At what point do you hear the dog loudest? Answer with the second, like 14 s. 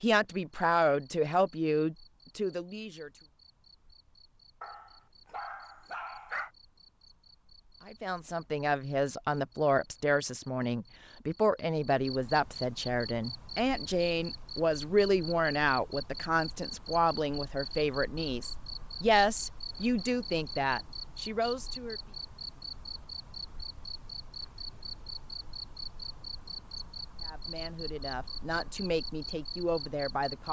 6 s.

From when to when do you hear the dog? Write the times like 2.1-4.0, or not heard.
4.6-6.5.